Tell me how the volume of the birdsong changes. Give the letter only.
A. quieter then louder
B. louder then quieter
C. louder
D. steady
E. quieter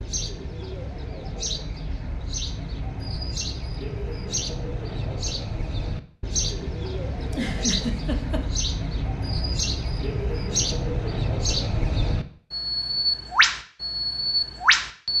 C.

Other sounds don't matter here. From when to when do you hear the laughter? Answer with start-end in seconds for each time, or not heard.
7.2-8.4.